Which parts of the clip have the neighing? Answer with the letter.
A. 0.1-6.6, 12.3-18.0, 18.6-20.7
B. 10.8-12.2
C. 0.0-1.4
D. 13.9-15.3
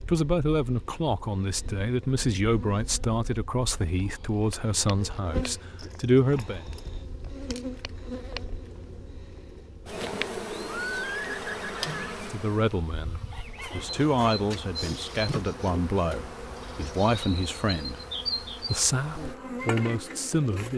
B.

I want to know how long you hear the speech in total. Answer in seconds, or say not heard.
14 s.